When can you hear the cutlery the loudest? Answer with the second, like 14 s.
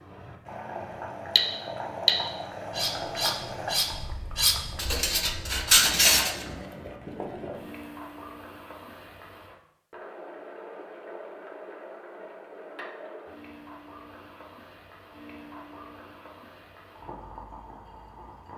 6 s.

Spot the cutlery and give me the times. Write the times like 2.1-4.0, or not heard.
1.4-6.5.